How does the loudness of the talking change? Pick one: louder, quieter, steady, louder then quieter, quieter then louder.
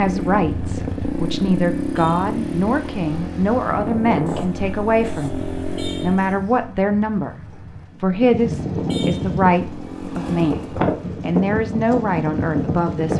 steady.